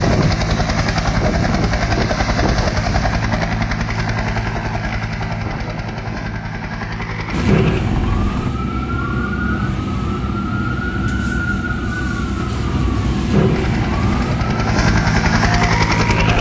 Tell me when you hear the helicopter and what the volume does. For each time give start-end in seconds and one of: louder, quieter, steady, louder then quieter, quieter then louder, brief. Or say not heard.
0.0-8.5 quieter
13.5-16.3 brief.